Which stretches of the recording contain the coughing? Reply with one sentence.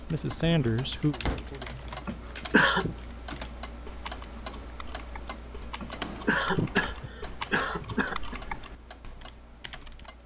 The coughing can be heard from 2.0 to 3.0 s and from 5.8 to 8.3 s.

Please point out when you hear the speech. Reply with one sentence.
You can hear the speech from 0.0 to 1.9 s.